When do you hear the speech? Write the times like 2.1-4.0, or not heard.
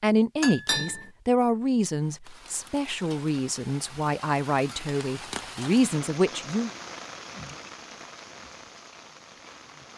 0.0-6.7.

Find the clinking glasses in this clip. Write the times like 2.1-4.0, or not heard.
0.4-1.1.